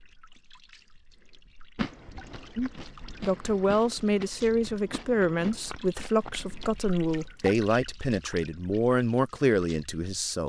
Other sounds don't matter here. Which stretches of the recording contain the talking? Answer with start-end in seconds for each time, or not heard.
2.5-10.4.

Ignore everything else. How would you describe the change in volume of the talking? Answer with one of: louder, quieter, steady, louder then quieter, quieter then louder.
steady.